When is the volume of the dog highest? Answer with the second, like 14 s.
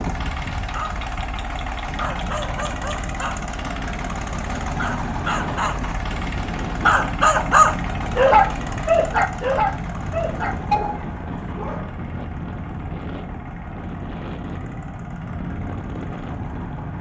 8 s.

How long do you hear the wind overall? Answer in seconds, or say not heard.
17 s.